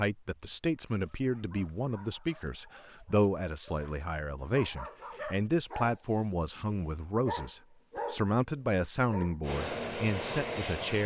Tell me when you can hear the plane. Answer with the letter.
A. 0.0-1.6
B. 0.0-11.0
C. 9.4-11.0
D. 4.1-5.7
C.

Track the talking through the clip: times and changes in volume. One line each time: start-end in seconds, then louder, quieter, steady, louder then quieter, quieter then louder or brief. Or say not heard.
0.0-11.0 steady.